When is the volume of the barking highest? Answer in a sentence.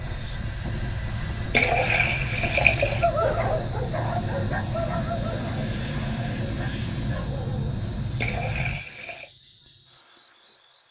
The volume of the barking peaks at 3 seconds.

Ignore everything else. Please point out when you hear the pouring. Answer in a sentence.
You can hear the pouring from 1.5 to 3.0 s and from 8.2 to 9.2 s.